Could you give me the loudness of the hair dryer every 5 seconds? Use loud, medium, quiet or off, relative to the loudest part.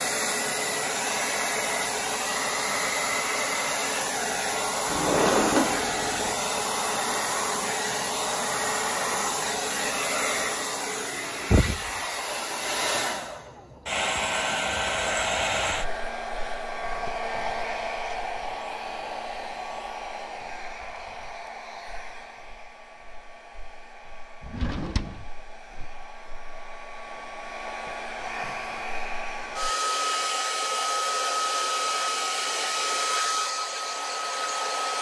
loud, loud, loud, loud, quiet, medium, loud.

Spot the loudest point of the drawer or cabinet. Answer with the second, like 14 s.
5 s.